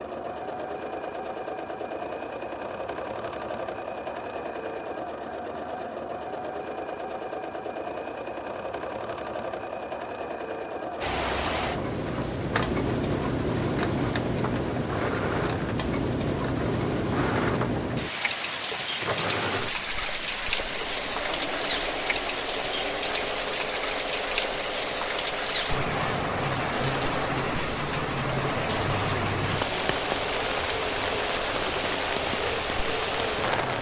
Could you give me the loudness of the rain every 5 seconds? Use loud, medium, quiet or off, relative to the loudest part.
off, off, loud, loud, loud, loud, loud.